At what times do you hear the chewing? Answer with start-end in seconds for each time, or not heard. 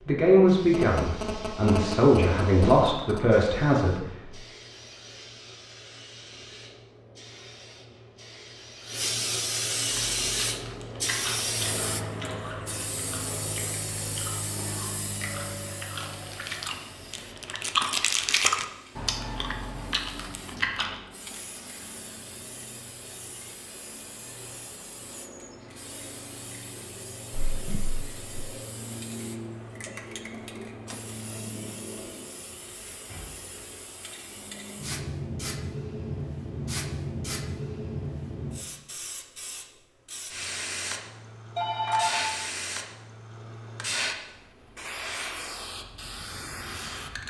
9.8-21.0.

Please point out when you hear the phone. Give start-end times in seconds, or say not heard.
0.7-3.2, 41.5-42.2.